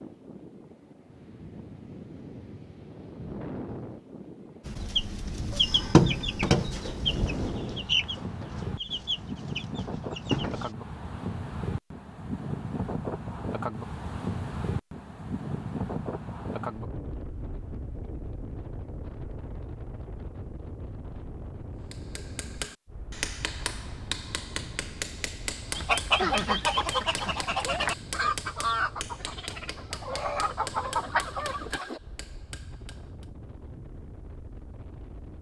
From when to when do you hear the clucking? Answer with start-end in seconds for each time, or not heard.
4.7-10.8, 25.8-32.0.